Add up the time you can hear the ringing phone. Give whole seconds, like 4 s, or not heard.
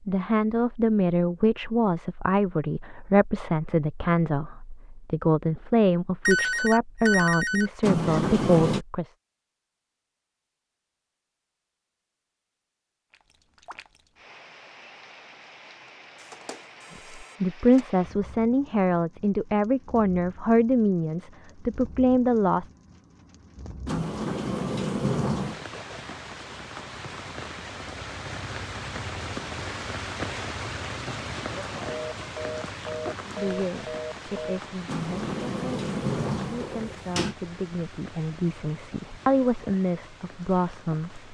6 s.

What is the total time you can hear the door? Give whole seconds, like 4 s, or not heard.
5 s.